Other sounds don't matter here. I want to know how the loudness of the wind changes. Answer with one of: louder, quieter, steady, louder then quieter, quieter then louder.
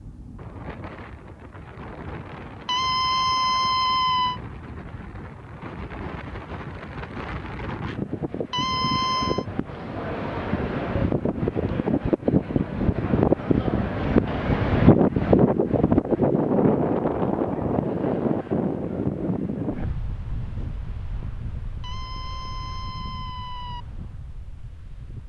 louder then quieter.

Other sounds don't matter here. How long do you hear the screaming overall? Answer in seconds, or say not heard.
5 s.